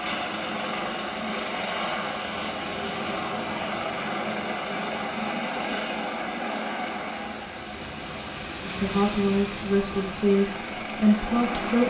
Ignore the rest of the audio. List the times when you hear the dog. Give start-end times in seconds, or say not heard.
not heard.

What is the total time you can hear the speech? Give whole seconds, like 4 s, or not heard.
3 s.